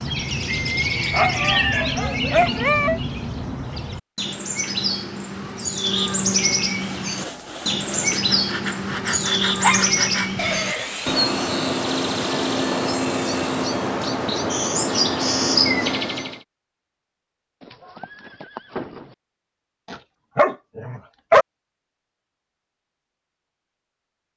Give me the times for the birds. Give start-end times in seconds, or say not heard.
0.0-16.4.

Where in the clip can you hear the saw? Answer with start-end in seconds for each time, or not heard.
6.7-13.8.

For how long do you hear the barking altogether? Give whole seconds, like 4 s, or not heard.
4 s.